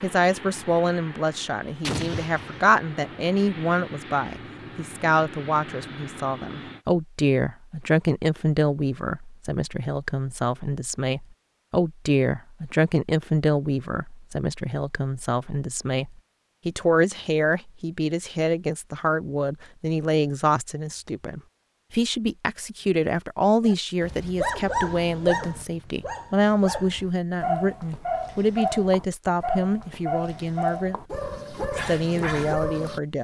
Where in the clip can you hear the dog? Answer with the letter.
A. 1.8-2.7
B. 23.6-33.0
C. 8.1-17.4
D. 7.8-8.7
B.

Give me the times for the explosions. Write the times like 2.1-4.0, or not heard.
1.8-2.7.